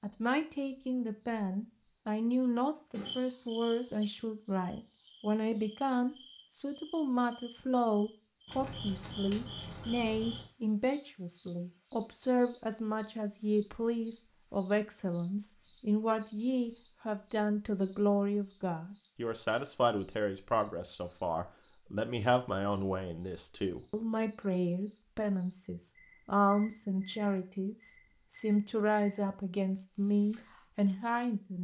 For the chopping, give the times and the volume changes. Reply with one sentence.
You can't hear the chopping here.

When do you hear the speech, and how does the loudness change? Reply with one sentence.
You can hear the speech from 0.0 to 31.6 s, at a steady volume.